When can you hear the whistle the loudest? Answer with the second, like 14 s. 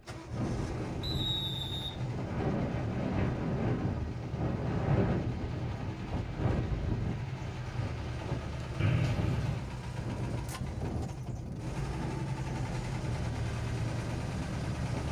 9 s.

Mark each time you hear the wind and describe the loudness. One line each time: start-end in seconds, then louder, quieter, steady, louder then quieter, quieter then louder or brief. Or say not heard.
0.0-15.0 quieter.